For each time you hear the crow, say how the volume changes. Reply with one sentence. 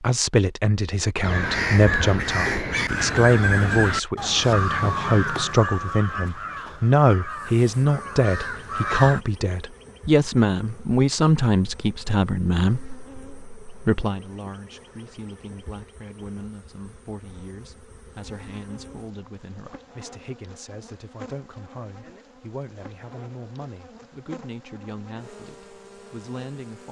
You can hear the crow from 1.2 to 9.2 s, getting quieter.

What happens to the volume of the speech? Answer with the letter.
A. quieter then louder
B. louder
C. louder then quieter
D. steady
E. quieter
E.